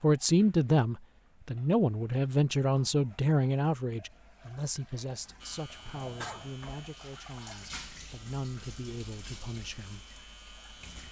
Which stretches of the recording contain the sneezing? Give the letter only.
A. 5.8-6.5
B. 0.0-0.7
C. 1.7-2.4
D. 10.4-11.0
A.